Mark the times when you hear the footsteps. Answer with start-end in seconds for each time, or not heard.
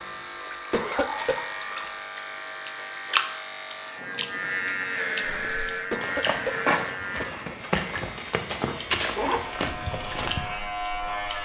5.2-10.5.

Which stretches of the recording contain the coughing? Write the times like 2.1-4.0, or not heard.
0.7-1.9, 5.9-7.5.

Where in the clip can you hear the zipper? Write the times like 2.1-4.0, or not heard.
8.7-9.7.